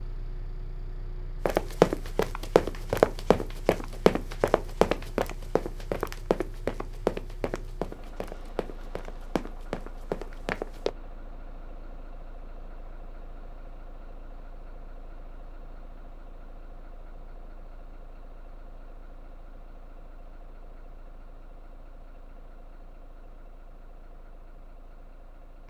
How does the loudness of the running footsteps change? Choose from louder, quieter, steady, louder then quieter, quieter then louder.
quieter.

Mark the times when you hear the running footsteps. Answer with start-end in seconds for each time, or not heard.
1.4-10.9.